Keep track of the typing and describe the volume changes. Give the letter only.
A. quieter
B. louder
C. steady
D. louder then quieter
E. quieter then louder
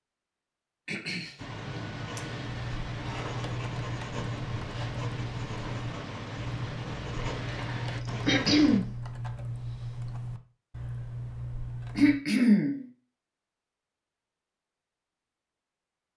C.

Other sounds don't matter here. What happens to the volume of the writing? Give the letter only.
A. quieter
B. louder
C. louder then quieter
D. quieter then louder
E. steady
E.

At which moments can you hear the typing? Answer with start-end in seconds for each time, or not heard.
2.5-12.2.